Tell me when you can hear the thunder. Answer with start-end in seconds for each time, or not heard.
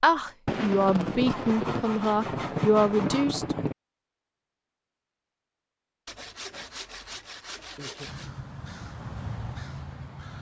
0.5-3.8.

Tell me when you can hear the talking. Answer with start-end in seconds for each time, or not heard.
0.0-3.5.